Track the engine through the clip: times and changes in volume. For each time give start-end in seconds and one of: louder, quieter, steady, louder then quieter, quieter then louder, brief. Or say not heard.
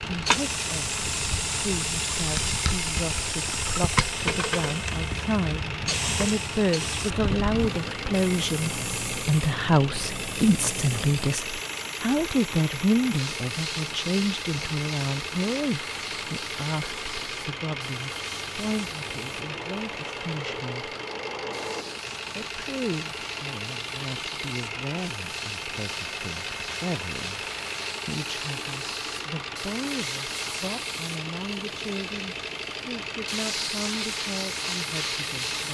0.0-35.6 steady.